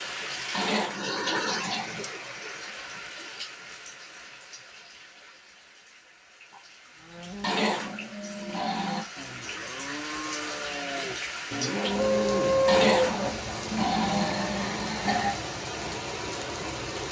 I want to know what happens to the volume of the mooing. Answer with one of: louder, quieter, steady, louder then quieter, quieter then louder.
louder.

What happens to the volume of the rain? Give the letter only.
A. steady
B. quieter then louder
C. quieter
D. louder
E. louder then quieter
B.